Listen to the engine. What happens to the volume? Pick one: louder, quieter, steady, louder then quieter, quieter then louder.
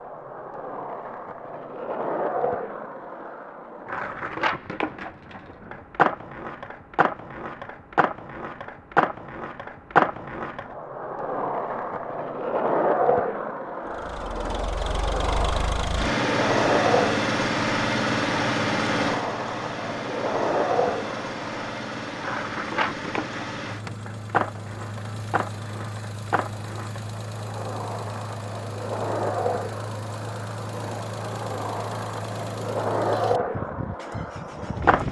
quieter.